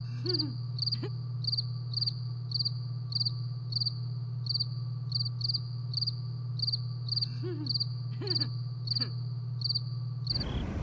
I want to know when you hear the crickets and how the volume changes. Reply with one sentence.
You can hear the crickets from 0.0 to 10.7 s, at a steady volume.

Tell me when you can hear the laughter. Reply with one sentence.
The laughter can be heard from 0.1 to 1.1 s and from 7.2 to 9.2 s.